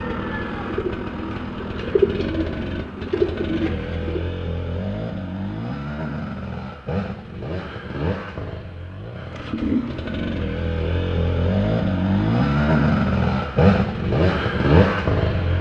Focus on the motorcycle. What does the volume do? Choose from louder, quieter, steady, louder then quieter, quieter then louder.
louder.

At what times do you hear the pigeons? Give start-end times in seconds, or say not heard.
0.0-4.2.